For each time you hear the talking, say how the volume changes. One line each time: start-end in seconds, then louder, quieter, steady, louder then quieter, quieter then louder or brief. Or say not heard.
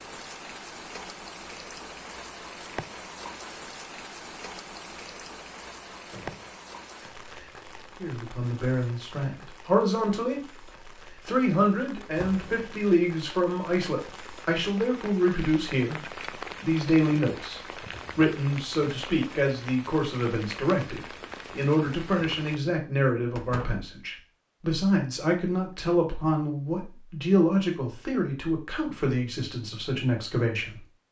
8.0-31.0 steady.